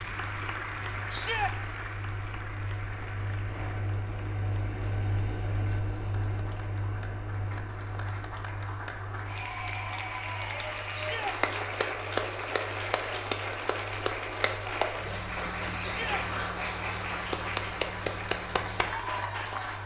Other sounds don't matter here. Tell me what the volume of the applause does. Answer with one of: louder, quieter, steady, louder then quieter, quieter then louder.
quieter then louder.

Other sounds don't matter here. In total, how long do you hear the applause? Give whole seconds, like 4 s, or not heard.
20 s.